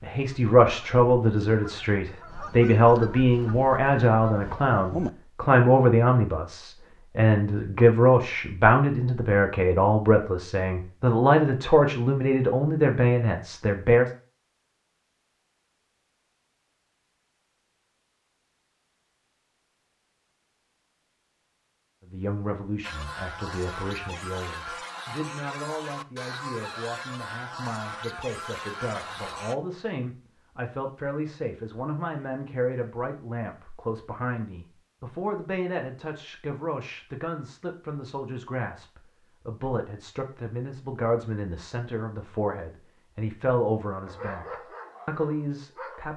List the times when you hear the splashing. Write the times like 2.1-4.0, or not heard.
not heard.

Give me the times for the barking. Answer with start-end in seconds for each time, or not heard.
44.0-46.1.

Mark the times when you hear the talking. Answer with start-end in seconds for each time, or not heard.
0.0-14.1, 22.1-46.1.